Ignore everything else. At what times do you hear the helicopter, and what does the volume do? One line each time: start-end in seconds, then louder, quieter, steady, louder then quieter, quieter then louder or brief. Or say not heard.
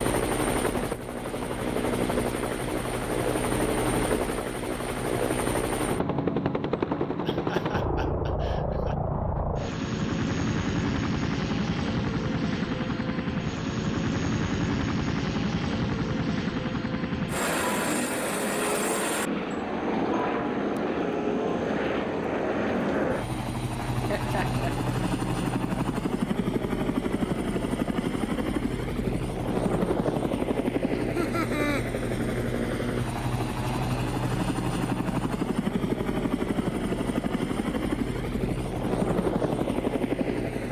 0.0-40.6 steady.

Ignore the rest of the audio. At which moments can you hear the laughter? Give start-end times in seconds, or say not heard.
7.2-8.9, 23.9-24.9, 30.9-31.9.